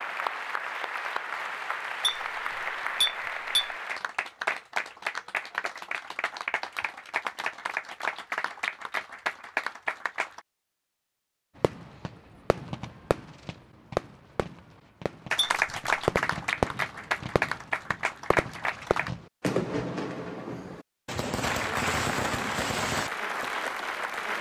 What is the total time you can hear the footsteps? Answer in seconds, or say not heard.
not heard.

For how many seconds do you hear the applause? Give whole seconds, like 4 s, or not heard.
17 s.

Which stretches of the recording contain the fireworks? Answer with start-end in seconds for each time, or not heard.
11.6-23.4.